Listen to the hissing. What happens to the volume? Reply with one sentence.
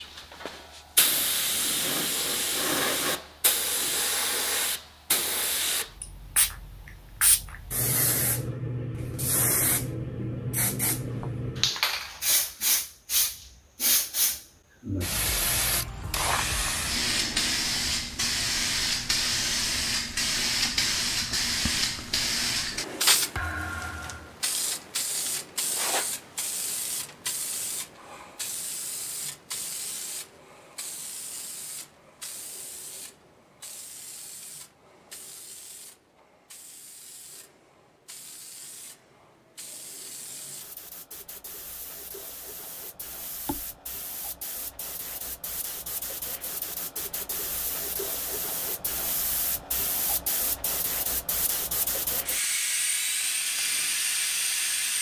The loudness of the hissing goes down, then up.